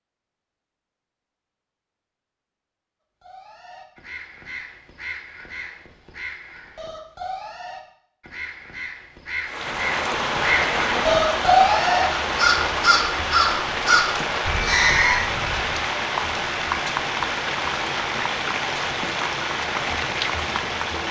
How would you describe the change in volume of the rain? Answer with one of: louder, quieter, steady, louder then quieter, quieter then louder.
steady.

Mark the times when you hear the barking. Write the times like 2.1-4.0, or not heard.
not heard.